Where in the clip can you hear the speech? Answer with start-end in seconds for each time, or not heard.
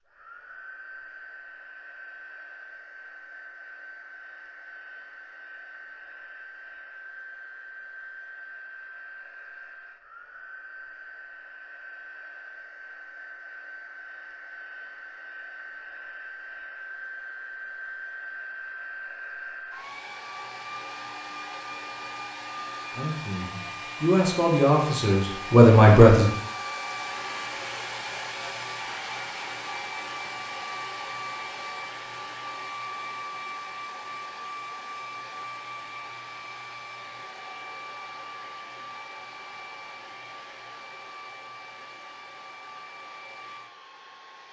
22.9-26.2.